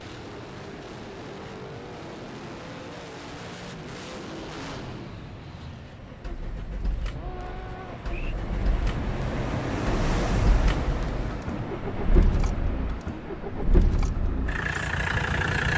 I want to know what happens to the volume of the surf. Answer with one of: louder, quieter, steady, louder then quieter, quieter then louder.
louder then quieter.